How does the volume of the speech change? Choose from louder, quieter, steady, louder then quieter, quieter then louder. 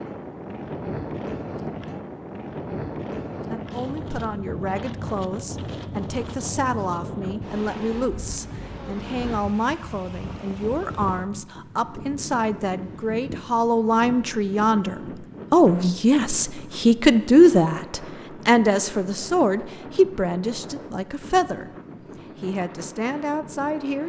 louder then quieter.